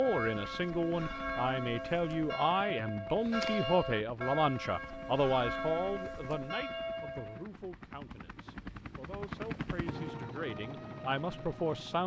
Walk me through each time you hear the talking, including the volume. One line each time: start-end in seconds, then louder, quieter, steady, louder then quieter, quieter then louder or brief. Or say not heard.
0.0-12.0 quieter then louder.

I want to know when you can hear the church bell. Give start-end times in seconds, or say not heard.
0.0-7.5.